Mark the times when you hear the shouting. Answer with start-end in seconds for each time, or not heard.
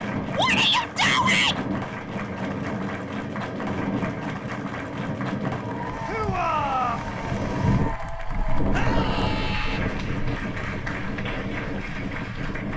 0.3-1.6, 6.0-7.0, 8.7-9.8.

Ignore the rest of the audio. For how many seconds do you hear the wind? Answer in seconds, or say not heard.
13 s.